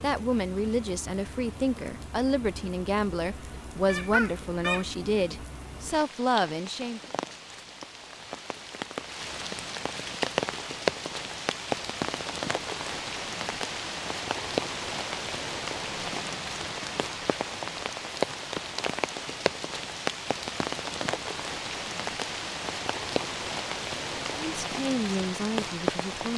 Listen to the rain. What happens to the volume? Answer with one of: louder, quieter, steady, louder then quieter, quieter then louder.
louder.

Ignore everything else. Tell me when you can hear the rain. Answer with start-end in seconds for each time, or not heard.
0.0-26.3.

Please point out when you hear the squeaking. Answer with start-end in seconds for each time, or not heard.
3.9-4.8.